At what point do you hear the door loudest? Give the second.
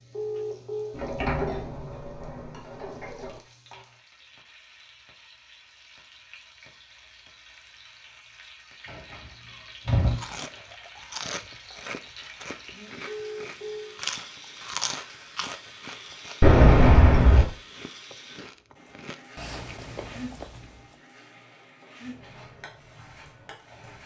17 s.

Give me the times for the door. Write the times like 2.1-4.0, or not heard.
0.9-3.4, 8.8-10.3, 16.4-17.4.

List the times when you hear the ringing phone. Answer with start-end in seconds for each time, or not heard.
0.1-1.0, 13.1-14.0.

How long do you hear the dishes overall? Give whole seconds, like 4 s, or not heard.
not heard.